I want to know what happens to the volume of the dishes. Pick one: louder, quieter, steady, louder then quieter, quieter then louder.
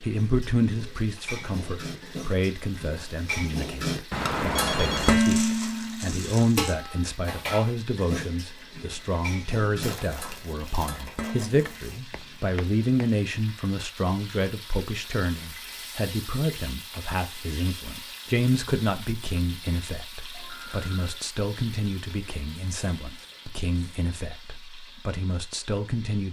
louder then quieter.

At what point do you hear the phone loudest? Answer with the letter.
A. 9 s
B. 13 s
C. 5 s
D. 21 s
C.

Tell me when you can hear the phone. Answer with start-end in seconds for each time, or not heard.
4.1-5.2, 12.1-13.1, 20.3-21.1.